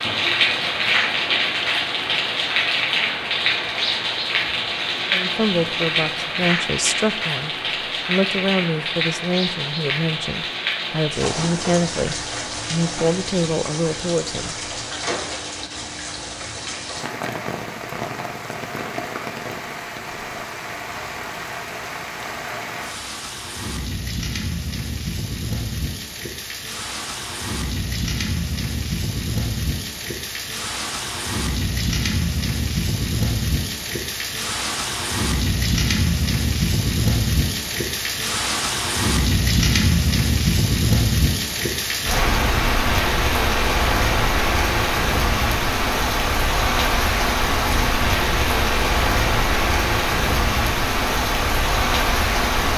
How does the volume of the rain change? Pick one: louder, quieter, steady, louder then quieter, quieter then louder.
quieter then louder.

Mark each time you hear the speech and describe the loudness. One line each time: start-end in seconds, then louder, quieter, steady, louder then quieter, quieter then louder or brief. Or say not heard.
5.1-14.6 steady.